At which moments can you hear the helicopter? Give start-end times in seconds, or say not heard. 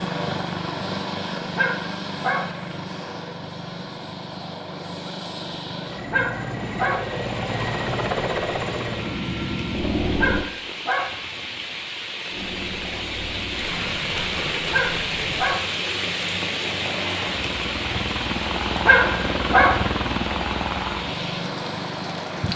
0.0-10.4, 12.2-22.5.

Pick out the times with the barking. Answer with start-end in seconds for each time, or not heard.
1.6-2.5, 6.1-7.0, 10.2-11.1, 14.7-15.6, 18.9-19.8.